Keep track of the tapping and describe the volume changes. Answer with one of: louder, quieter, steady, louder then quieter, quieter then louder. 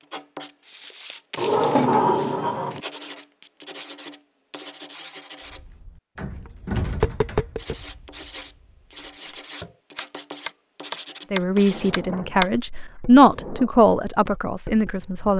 quieter then louder.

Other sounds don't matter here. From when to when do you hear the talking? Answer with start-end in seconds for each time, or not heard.
11.3-15.3.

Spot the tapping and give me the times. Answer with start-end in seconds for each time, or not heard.
5.5-12.5.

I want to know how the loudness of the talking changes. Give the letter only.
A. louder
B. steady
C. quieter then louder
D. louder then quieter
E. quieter
D.